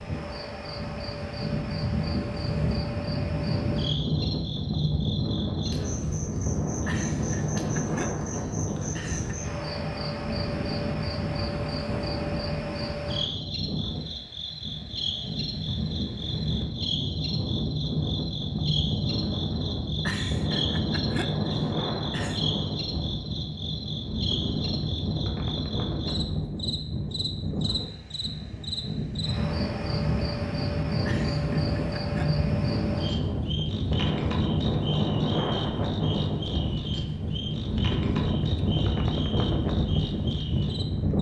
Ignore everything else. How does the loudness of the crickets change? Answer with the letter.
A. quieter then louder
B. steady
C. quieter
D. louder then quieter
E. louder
B.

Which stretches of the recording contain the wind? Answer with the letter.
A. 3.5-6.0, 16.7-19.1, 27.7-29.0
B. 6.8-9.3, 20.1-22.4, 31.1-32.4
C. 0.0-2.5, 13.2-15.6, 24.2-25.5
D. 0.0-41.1
D.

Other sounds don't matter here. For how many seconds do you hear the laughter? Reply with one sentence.
The laughter can be heard for 6 seconds in total.